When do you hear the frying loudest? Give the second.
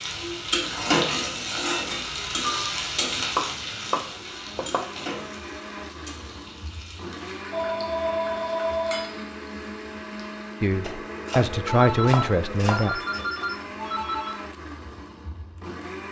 1 s.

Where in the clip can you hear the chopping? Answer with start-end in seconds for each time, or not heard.
3.4-5.0, 10.8-13.2.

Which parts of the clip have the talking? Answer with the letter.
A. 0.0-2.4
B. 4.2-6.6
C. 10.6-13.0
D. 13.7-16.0
C.